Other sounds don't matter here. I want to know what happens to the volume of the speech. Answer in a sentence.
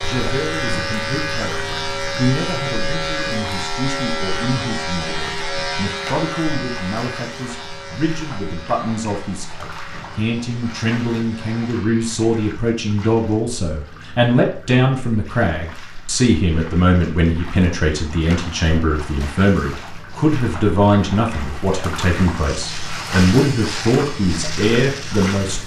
The volume of the speech goes up.